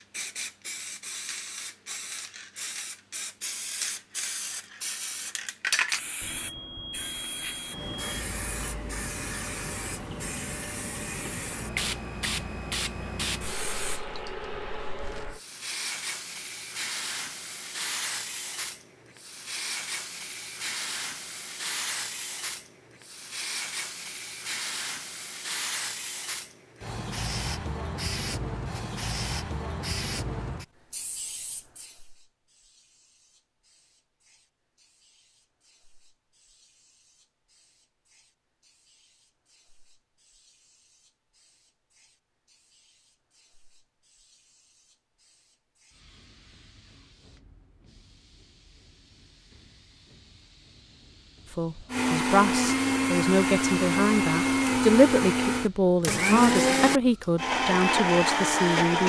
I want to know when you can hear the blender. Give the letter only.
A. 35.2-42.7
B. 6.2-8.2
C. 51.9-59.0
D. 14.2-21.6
C.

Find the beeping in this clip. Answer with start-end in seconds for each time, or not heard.
6.2-8.2.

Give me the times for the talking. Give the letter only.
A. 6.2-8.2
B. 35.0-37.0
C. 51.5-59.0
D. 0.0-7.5
C.